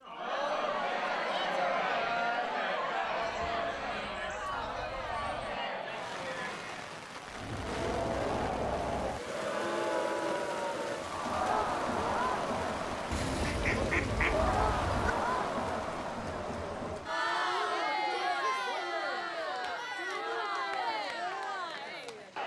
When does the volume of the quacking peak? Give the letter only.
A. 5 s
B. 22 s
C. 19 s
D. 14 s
D.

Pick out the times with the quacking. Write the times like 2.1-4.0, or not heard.
3.2-5.6, 13.1-15.2.